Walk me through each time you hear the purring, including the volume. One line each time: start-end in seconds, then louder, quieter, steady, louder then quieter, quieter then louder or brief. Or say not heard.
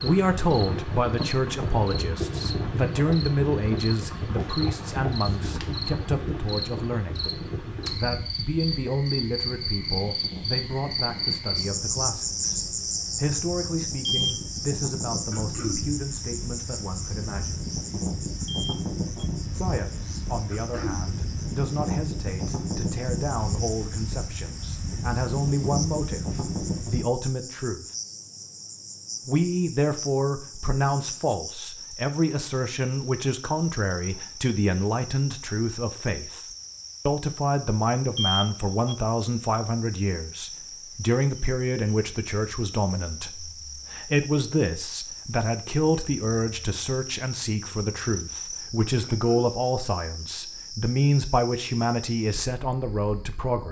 not heard.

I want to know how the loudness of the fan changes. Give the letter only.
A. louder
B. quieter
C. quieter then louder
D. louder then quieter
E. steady
C.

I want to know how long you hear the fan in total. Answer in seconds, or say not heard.
27 s.